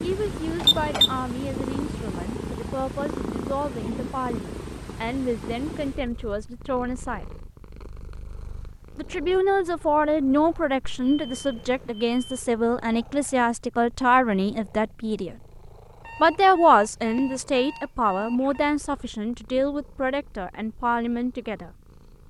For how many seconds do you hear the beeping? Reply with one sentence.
The beeping can be heard for 5 seconds in total.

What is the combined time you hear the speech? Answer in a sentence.
The speech can be heard for 19 seconds in total.